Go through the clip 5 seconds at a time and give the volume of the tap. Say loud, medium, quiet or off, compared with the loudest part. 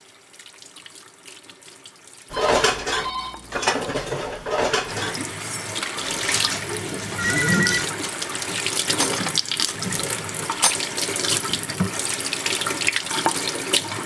quiet, loud, loud.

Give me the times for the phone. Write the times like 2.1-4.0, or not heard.
2.3-3.6, 7.2-7.9.